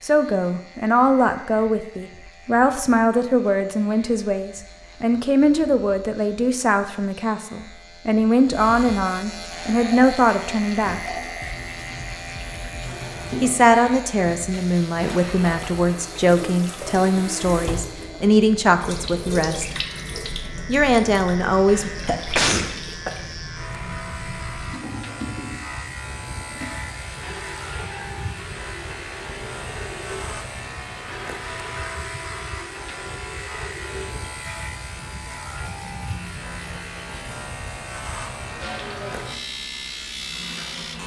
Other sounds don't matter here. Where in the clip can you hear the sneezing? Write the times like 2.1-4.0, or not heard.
21.6-23.1.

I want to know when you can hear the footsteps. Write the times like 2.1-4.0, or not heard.
not heard.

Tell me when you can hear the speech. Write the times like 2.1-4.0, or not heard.
0.0-11.1, 13.4-19.6, 20.6-21.9.